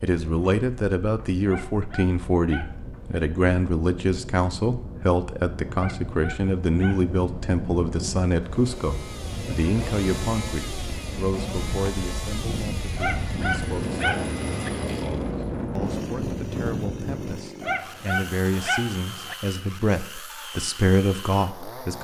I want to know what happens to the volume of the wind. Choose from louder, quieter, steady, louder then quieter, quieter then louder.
louder.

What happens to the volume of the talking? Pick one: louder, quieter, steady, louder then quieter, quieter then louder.
quieter then louder.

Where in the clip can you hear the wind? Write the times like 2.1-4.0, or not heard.
0.2-17.5.